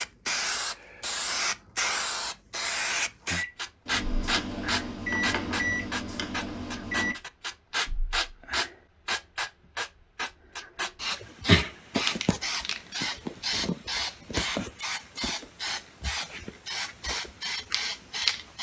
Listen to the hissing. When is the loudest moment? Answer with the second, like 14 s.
12 s.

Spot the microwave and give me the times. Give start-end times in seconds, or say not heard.
3.4-7.2.